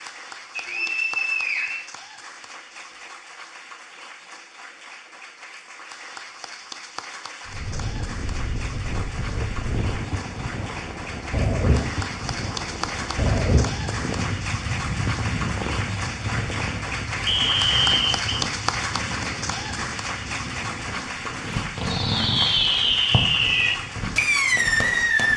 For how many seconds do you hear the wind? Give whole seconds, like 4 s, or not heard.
18 s.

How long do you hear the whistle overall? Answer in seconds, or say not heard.
2 s.